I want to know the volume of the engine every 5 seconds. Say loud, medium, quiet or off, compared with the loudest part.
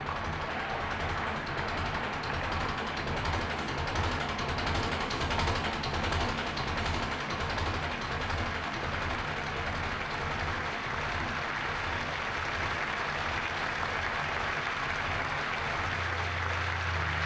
loud, loud, medium, medium.